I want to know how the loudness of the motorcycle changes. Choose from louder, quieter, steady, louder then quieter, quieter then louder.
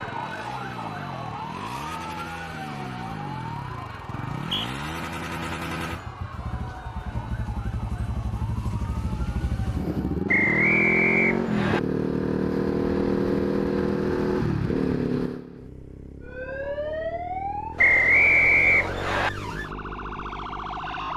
louder then quieter.